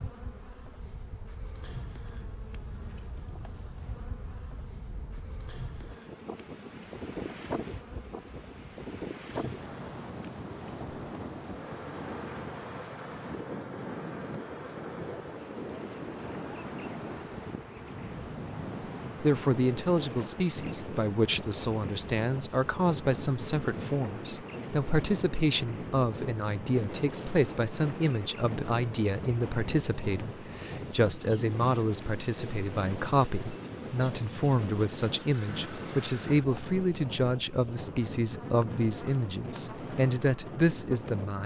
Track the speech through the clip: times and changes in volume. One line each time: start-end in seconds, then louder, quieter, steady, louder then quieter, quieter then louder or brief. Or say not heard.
19.2-41.4 steady.